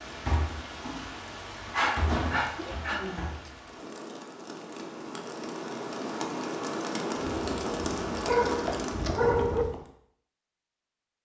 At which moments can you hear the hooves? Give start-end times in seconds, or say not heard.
7.2-9.8.